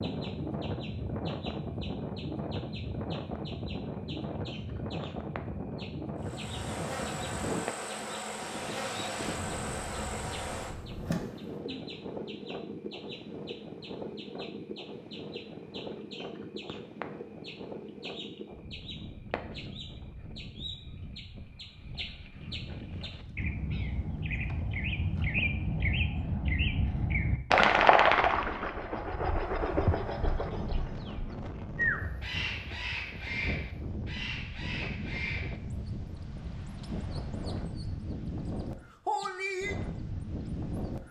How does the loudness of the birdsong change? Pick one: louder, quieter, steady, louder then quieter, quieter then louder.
louder then quieter.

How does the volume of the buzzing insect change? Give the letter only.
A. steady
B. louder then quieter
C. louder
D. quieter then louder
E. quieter
A.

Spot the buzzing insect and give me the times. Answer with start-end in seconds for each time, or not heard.
6.2-11.6.